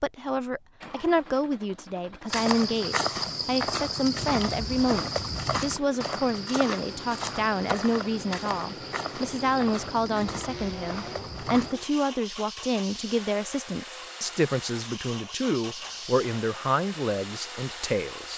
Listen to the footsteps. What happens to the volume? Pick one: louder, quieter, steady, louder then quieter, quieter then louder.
quieter.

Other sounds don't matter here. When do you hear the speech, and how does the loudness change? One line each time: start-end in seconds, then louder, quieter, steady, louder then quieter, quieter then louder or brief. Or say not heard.
0.0-18.3 steady.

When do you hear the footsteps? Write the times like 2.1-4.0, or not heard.
2.3-11.8.